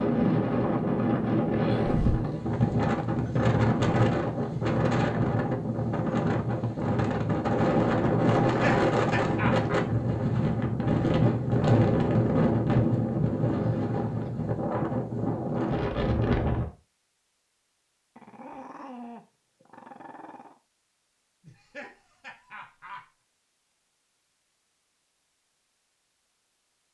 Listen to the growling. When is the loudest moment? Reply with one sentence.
The loudest moment of the growling is at 2 seconds.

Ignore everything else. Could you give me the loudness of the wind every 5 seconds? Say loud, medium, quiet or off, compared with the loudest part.
loud, loud, loud, loud, off, off.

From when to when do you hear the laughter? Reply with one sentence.
The laughter can be heard from 8.5 to 9.8 s and from 21.4 to 23.1 s.